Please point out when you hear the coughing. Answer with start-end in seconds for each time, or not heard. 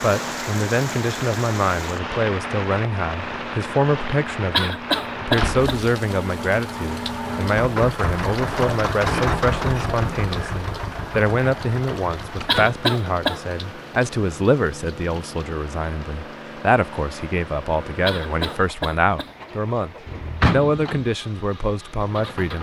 4.5-5.8, 12.4-13.4, 18.1-19.3.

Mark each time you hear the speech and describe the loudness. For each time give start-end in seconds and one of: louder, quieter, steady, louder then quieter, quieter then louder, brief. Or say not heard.
0.0-22.5 steady.